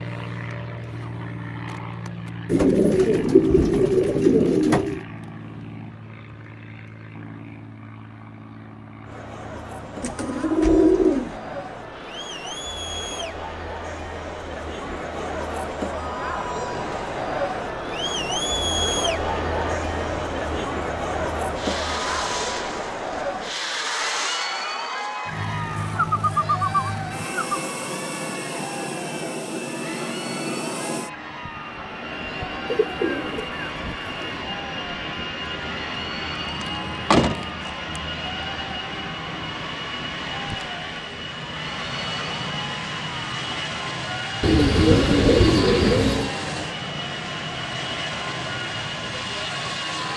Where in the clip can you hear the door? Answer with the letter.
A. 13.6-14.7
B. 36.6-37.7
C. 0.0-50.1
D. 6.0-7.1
B.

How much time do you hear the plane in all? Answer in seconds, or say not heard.
50 s.